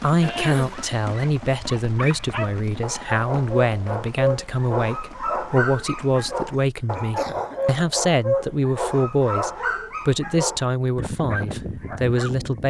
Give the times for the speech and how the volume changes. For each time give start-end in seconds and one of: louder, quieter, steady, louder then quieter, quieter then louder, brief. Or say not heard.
0.0-12.6 steady.